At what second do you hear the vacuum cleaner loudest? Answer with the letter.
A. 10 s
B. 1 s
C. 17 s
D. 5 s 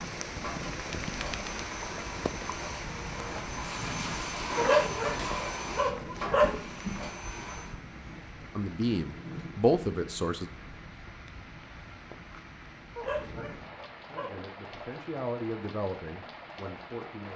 D.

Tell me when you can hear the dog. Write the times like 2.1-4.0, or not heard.
4.5-6.6, 12.9-14.3.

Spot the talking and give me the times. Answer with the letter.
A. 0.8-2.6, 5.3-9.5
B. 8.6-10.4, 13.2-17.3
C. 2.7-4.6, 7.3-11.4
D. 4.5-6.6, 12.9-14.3
B.